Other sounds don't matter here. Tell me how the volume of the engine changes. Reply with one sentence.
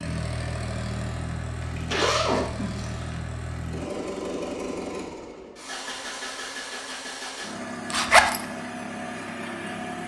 The loudness of the engine stays about the same.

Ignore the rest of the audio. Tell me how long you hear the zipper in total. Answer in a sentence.
You can hear the zipper for 2 seconds altogether.